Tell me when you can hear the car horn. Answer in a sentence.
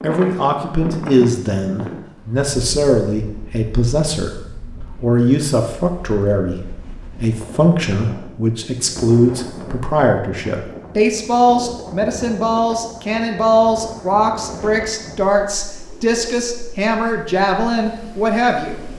You can't hear the car horn here.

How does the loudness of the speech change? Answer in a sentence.
The loudness of the speech stays about the same.